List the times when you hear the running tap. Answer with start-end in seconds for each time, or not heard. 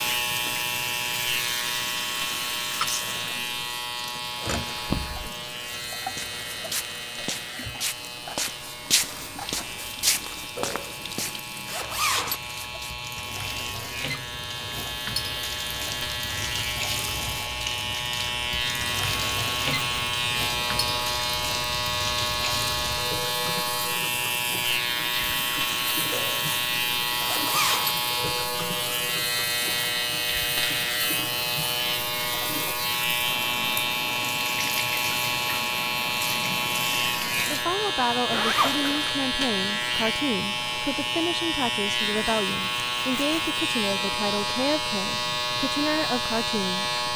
0.0-37.6.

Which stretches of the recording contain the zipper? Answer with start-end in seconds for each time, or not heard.
10.6-12.4, 26.1-27.9, 38.3-39.2.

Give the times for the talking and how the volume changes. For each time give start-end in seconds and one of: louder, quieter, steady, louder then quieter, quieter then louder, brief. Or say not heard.
37.5-46.9 steady.